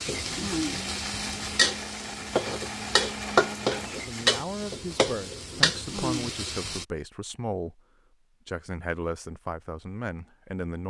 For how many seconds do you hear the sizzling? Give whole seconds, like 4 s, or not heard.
7 s.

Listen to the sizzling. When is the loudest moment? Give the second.
4 s.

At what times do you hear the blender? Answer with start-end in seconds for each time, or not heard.
0.0-4.5.